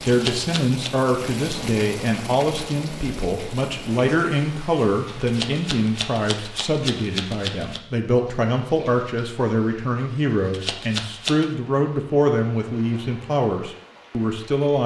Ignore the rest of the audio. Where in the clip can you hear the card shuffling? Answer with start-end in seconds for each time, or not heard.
0.1-0.9, 5.2-7.8, 10.5-11.5.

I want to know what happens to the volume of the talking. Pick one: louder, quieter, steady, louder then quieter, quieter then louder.
steady.